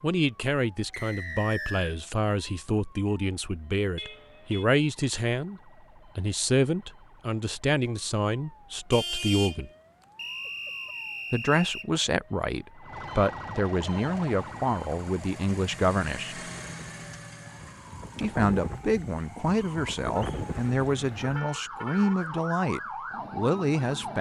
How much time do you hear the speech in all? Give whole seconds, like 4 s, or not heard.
21 s.